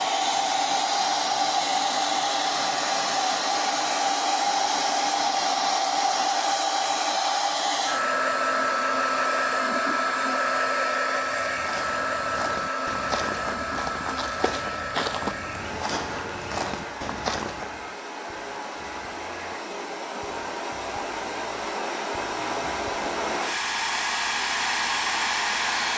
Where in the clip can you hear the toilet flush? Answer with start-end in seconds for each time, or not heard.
not heard.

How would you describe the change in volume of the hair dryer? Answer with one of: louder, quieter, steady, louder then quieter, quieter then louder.
quieter then louder.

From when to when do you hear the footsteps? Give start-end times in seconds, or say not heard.
11.3-17.9.